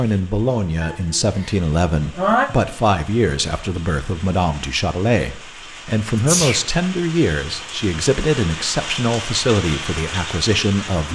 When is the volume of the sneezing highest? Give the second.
2 s.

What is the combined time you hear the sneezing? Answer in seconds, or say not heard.
2 s.